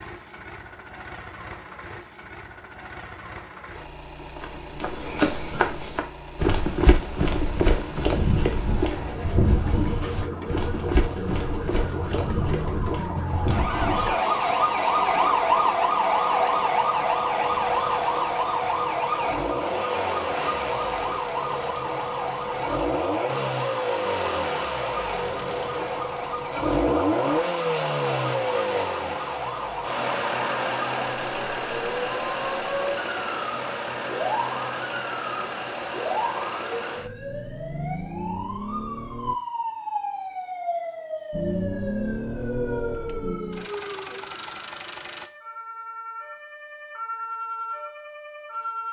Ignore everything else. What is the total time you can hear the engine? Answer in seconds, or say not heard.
43 s.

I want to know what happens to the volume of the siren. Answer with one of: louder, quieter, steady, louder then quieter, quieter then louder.
quieter.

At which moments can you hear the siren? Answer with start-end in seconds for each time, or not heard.
8.6-48.8.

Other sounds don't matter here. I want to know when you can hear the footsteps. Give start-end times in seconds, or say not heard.
4.3-14.2.